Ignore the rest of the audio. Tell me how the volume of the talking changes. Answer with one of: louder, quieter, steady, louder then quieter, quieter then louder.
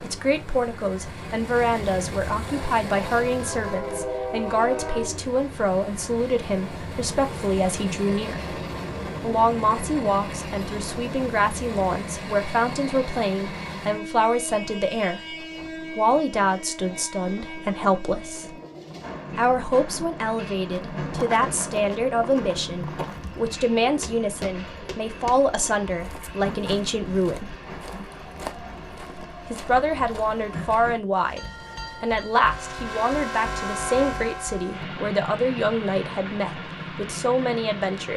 steady.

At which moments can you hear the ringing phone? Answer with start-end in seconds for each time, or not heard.
not heard.